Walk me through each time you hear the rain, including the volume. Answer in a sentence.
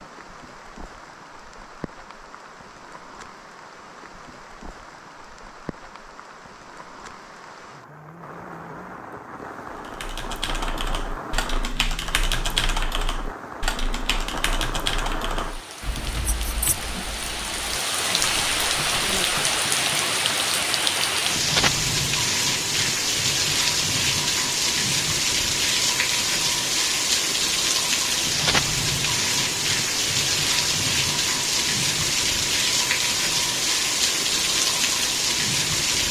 You can hear the rain from 0.0 to 36.0 s, getting louder.